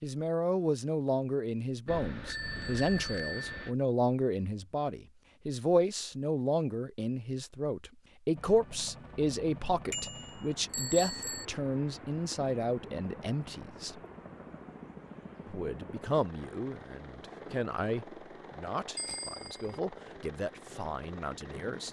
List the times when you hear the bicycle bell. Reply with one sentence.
You can hear the bicycle bell from 1.9 to 3.8 s, from 9.9 to 11.4 s and from 18.9 to 19.8 s.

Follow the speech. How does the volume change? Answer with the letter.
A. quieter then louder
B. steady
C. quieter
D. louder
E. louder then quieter
C.